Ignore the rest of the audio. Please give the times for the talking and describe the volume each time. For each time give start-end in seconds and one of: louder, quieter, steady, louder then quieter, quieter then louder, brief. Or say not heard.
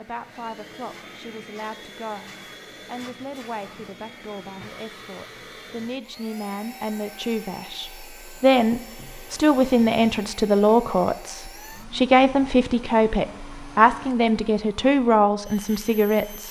0.0-16.4 louder.